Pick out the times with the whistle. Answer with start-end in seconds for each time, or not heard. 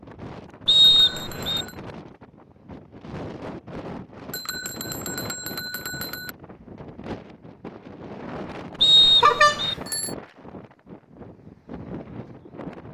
0.7-1.6, 8.8-9.8.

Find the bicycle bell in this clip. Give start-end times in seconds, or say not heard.
0.9-1.8, 4.3-6.3, 9.2-10.2.